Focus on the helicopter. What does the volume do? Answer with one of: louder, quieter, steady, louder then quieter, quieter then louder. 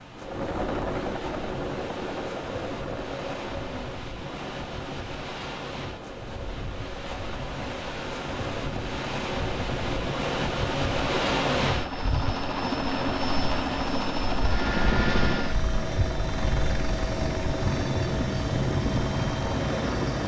quieter then louder.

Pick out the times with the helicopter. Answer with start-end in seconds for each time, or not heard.
0.0-20.2.